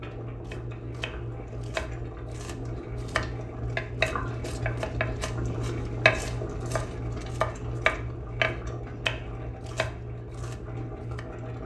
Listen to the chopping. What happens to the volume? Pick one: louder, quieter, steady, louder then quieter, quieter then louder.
louder then quieter.